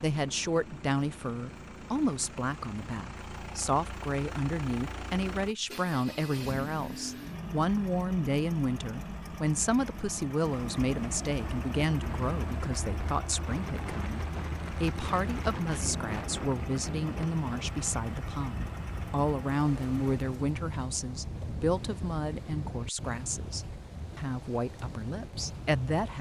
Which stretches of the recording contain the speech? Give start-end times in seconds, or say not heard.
0.0-14.2, 14.8-26.1.